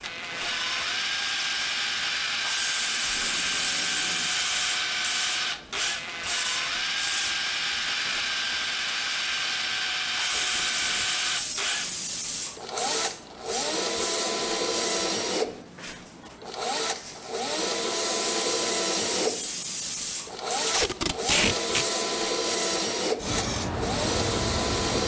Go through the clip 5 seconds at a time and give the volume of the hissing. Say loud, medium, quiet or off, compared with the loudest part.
loud, medium, loud, loud, loud.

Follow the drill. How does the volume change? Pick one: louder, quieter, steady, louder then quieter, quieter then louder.
steady.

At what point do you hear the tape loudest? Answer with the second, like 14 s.
21 s.